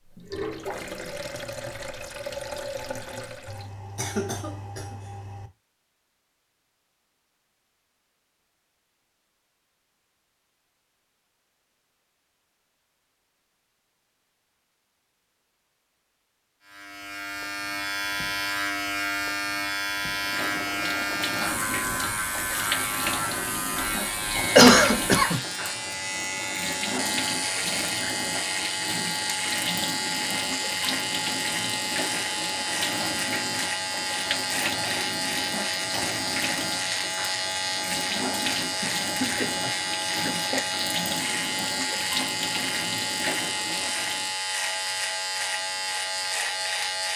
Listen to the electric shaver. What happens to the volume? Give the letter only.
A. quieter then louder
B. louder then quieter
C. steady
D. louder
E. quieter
C.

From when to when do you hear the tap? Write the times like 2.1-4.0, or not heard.
0.1-3.7, 20.1-44.4.